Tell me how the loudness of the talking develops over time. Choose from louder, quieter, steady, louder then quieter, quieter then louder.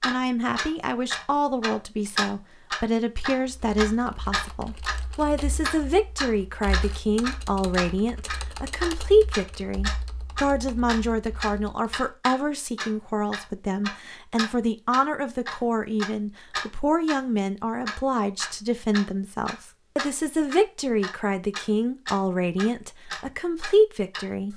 steady.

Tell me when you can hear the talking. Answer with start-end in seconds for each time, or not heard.
0.0-24.5.